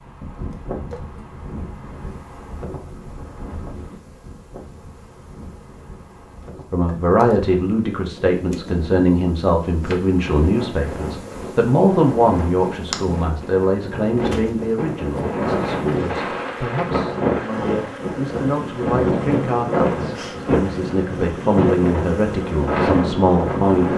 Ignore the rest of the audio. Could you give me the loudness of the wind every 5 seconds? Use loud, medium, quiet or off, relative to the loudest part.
quiet, quiet, medium, loud, loud.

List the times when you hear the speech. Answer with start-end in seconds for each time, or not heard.
6.7-23.9.